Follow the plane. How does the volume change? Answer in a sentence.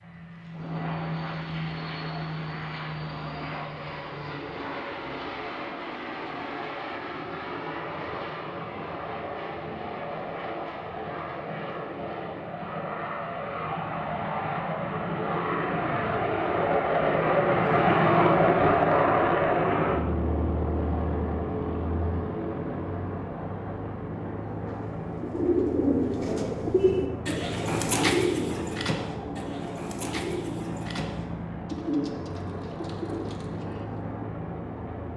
The loudness of the plane goes up, then down.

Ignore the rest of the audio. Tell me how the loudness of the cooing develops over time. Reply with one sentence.
The loudness of the cooing goes down.